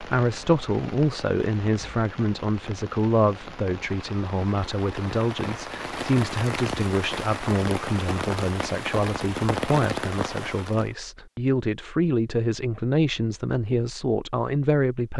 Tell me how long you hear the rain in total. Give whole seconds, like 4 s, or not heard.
11 s.